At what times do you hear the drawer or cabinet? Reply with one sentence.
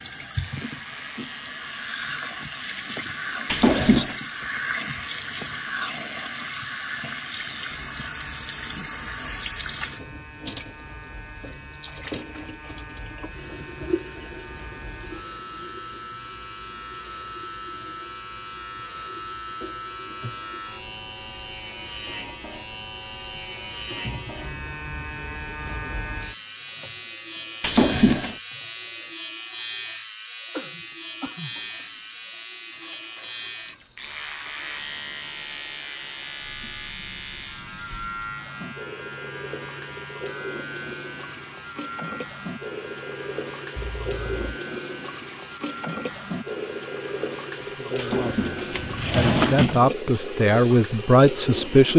The drawer or cabinet can be heard from 3.5 to 4.2 s, from 27.6 to 28.4 s and from 48.0 to 49.8 s.